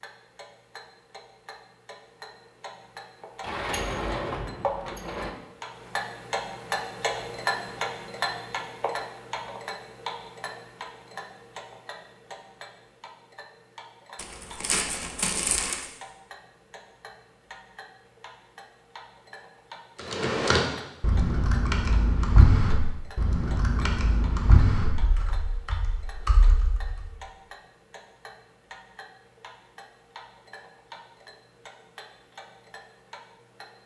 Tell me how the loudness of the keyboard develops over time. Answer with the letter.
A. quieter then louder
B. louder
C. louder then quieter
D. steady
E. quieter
E.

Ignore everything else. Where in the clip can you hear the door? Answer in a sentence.
You can hear the door from 3.4 to 5.3 s.